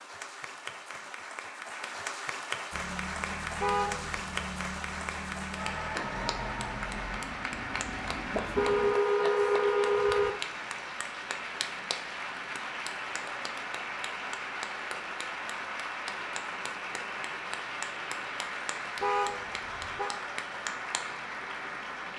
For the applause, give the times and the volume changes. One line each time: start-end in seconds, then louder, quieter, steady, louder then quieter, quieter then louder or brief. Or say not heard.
0.0-22.1 steady.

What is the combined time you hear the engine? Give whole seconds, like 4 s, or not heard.
6 s.